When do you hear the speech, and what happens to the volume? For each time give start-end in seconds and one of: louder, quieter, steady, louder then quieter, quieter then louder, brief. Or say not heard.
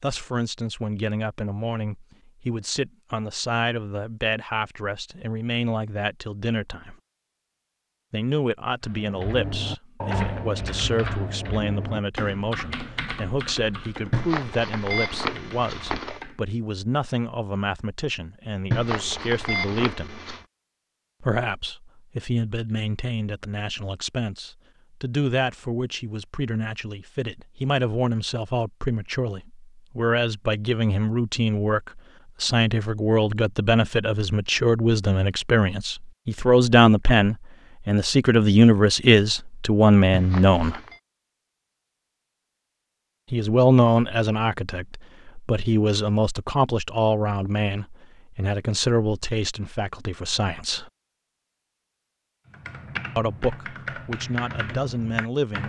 0.0-7.0 steady
8.1-20.1 steady
21.2-40.8 louder
43.3-50.9 quieter
53.1-55.6 brief.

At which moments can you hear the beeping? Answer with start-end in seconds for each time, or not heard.
14.1-16.2, 18.7-20.4, 40.1-41.0.